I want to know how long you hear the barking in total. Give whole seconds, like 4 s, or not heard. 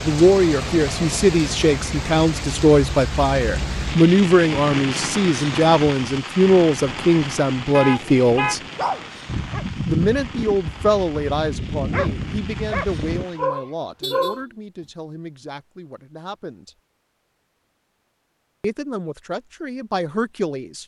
6 s.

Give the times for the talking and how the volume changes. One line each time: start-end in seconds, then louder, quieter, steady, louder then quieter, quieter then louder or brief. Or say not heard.
0.0-8.6 steady
9.8-16.8 quieter
18.6-20.8 brief.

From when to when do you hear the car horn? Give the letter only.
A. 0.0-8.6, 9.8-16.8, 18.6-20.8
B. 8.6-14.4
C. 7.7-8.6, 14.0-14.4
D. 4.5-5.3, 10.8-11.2
C.